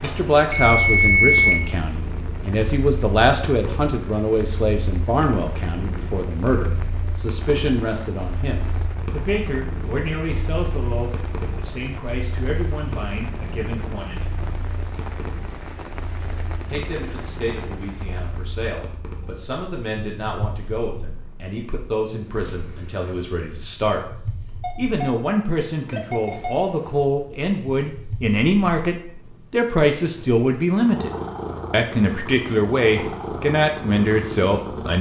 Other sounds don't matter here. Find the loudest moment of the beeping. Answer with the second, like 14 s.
1 s.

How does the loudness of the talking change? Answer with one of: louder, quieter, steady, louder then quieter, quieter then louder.
quieter then louder.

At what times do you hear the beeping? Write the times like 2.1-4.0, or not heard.
0.0-1.6, 24.6-26.6.